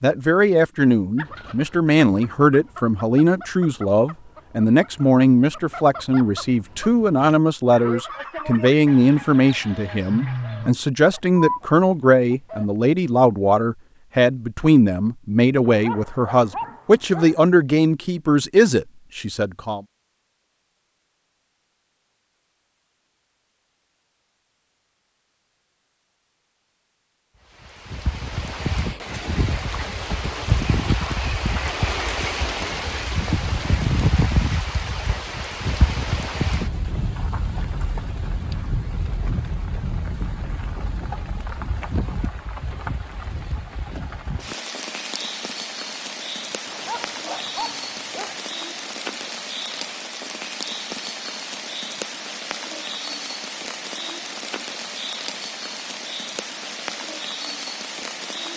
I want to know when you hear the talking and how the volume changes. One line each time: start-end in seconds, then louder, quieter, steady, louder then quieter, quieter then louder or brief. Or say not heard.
0.0-19.8 steady.